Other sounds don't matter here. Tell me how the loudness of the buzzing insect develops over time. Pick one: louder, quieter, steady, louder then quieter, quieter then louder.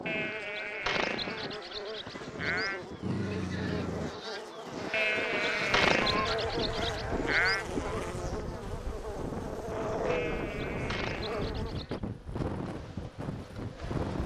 louder then quieter.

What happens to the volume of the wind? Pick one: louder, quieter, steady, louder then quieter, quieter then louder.
louder.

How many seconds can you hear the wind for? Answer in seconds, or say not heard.
14 s.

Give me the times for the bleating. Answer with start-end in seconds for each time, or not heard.
0.1-2.8, 4.9-7.7, 10.1-12.0.